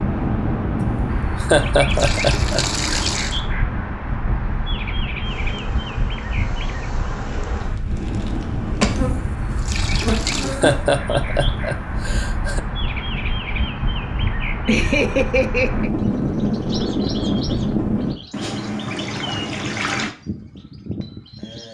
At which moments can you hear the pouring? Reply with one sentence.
The pouring can be heard from 1.9 to 3.4 s, from 9.6 to 10.6 s and from 18.3 to 20.1 s.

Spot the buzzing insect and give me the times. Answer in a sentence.
You can hear the buzzing insect from 5.2 to 10.8 s.